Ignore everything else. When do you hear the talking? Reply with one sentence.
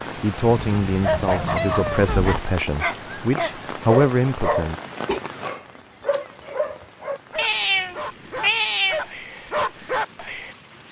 You can hear the talking from 0.1 to 4.8 s.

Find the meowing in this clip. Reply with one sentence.
You can hear the meowing from 0.7 to 2.5 s and from 7.3 to 9.1 s.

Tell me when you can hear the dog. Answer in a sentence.
You can hear the dog from 1.0 to 10.6 s.